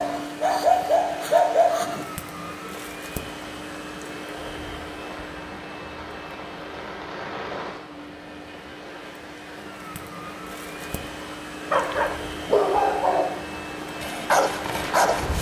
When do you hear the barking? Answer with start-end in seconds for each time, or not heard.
0.0-2.0, 11.7-15.3.